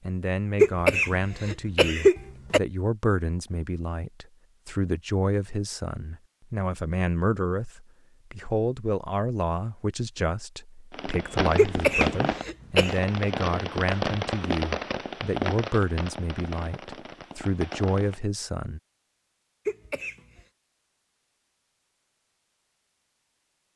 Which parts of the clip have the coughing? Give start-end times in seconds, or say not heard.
0.6-2.6, 11.6-12.9, 19.6-20.4.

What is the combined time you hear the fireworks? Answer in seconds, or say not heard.
7 s.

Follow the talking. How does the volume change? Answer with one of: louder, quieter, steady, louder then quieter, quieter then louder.
steady.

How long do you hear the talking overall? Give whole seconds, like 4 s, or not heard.
19 s.